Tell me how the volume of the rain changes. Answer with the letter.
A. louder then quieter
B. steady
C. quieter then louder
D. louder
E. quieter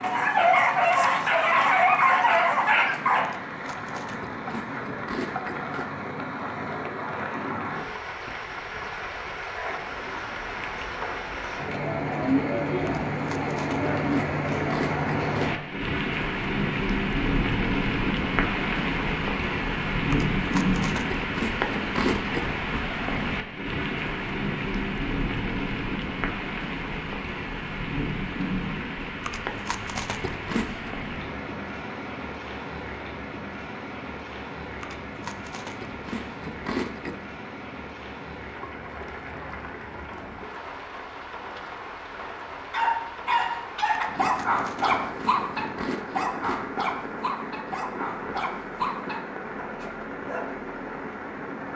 A.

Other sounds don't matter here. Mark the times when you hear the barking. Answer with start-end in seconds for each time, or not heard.
0.0-3.2, 42.7-50.5.